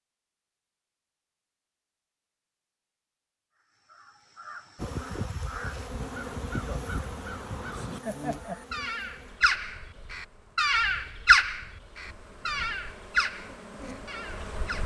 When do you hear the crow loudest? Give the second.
11 s.